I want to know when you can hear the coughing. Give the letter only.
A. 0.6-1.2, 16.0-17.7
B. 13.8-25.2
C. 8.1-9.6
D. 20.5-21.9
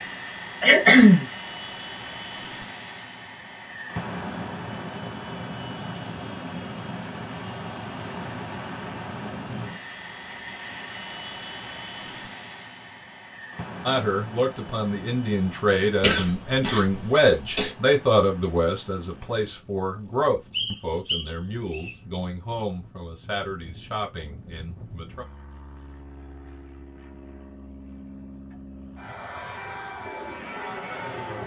A.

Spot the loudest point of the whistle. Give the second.
21 s.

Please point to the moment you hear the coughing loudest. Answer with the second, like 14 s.
1 s.